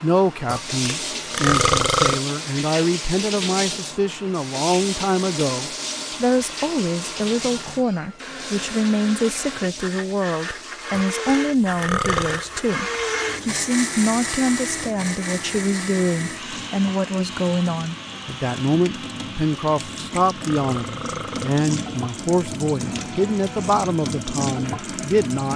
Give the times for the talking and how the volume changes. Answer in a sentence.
The talking can be heard from 0.0 to 25.5 s, at a steady volume.